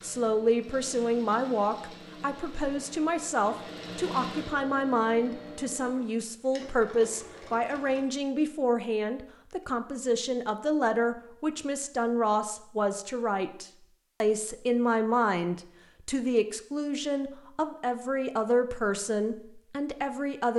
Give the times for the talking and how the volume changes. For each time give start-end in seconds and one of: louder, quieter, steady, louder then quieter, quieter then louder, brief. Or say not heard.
0.0-20.5 steady.